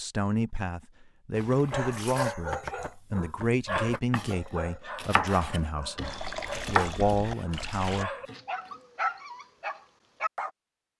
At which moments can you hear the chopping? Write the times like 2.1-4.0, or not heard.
2.5-8.8.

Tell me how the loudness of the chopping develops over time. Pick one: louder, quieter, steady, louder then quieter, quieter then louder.
louder then quieter.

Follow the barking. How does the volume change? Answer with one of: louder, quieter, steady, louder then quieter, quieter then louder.
quieter then louder.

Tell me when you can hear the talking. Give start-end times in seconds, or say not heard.
0.0-8.1.